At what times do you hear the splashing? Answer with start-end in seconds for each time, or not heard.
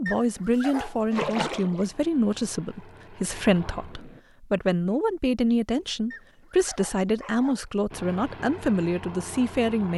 1.1-1.9.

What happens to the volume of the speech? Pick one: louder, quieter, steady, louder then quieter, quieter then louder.
steady.